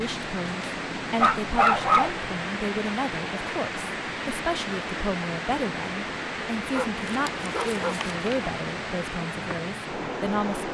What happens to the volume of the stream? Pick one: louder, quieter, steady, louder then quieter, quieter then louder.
steady.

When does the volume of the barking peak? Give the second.
2 s.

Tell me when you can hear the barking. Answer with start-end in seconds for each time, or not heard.
1.2-2.1, 6.7-8.2.